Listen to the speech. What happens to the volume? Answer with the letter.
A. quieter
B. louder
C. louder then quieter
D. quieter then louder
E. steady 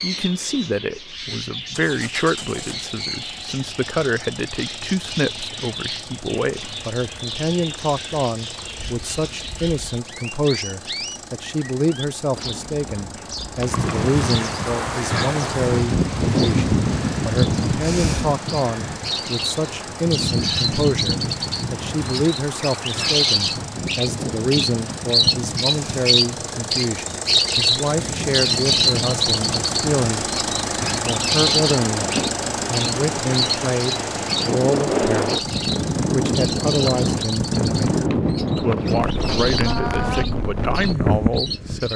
E.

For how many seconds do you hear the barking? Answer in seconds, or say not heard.
not heard.